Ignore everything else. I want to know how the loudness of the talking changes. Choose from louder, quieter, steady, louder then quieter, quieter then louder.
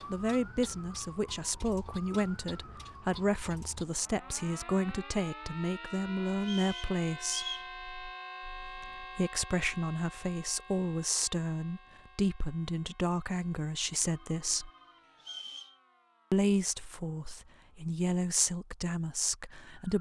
steady.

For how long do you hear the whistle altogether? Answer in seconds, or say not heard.
2 s.